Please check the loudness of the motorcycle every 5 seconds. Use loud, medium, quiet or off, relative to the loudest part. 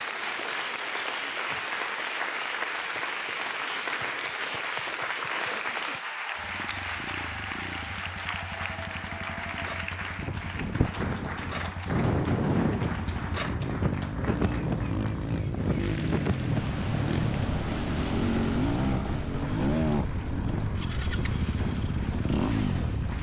off, quiet, medium, loud, loud.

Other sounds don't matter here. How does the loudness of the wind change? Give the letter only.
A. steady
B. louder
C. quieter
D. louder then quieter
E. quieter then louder
C.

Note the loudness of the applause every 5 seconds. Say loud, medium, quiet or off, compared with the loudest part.
loud, loud, medium, quiet, quiet.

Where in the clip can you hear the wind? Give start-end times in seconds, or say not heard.
10.2-23.1.